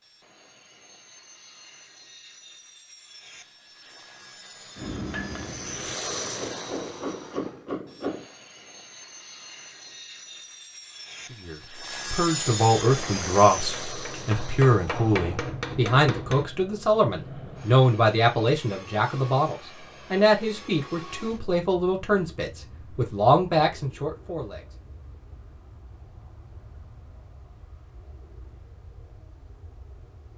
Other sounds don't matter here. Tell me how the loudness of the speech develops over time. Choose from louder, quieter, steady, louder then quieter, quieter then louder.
steady.